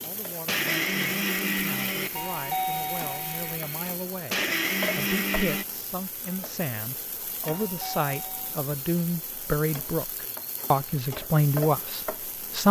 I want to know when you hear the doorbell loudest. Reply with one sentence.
The volume of the doorbell peaks at 3 seconds.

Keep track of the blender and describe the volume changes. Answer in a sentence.
The volume of the blender goes down, then up.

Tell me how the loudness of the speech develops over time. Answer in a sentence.
The loudness of the speech goes up.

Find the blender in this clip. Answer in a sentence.
The blender can be heard from 0.0 to 5.7 s.